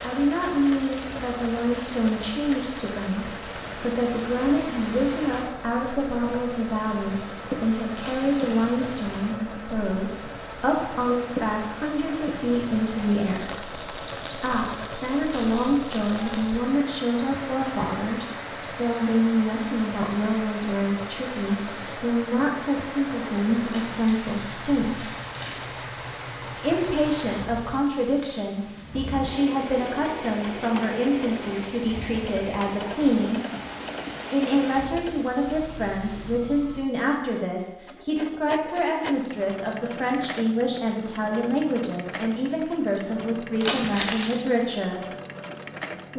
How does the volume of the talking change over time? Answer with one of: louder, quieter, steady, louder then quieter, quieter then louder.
steady.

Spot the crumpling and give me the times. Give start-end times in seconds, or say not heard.
8.0-8.7, 23.6-25.6, 43.6-44.4.